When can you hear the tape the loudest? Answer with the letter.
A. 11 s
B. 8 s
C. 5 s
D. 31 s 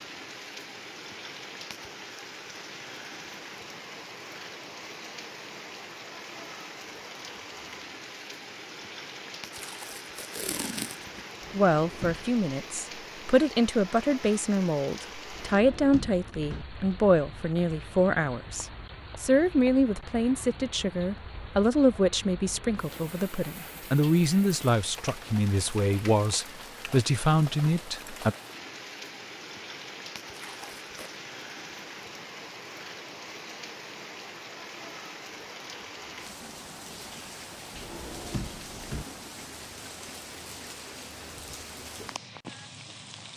A.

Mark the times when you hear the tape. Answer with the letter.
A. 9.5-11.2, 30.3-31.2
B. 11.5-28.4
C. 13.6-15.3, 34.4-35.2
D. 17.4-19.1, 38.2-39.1
A.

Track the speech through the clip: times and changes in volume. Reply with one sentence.
You can hear the speech from 11.5 to 28.4 s, at a steady volume.